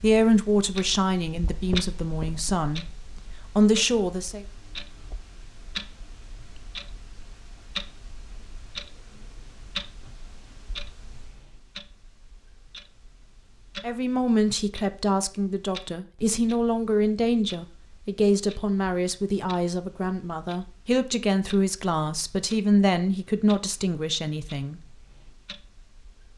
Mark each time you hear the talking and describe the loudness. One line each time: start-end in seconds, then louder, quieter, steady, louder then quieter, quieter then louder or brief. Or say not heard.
0.0-2.9 brief
3.5-4.5 brief
13.8-24.8 steady.